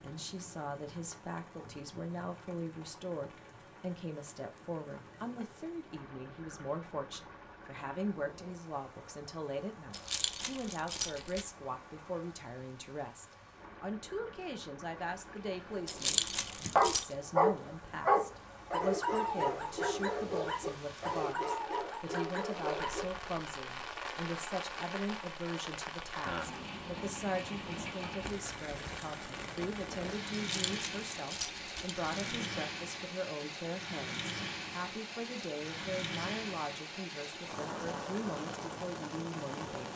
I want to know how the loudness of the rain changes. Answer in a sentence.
The volume of the rain goes up.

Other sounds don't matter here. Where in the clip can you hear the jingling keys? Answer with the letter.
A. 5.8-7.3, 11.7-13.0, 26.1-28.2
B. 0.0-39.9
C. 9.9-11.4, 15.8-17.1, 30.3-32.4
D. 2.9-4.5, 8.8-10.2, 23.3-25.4
C.